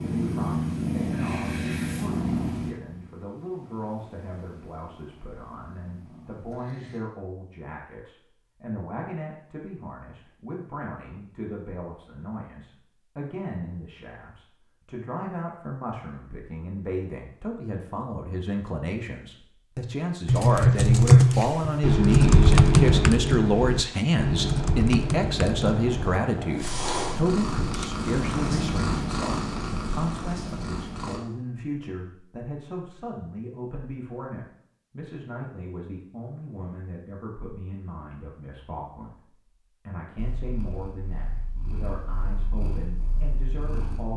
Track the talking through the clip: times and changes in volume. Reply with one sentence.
You can hear the talking from 0.0 to 44.1 s, getting louder then quieter.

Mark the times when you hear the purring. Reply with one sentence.
You can hear the purring from 0.0 to 7.0 s, from 24.3 to 31.2 s and from 40.1 to 44.1 s.